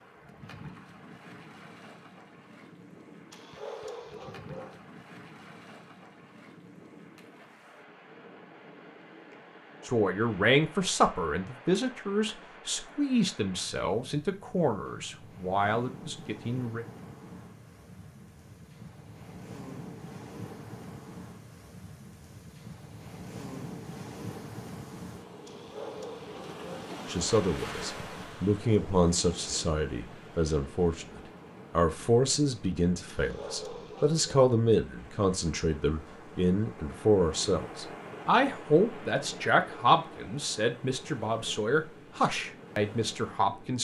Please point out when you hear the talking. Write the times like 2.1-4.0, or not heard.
9.8-16.9, 27.1-43.7.